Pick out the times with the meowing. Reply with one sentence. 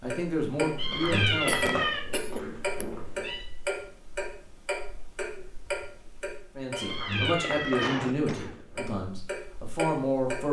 The meowing can be heard from 0.8 to 3.5 s and from 6.8 to 8.9 s.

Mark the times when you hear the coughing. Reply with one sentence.
The coughing can be heard from 1.4 to 2.9 s and from 7.8 to 8.7 s.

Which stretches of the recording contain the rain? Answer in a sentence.
The rain can't be heard in this clip.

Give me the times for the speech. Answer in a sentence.
You can hear the speech from 0.0 to 1.9 s and from 6.5 to 10.4 s.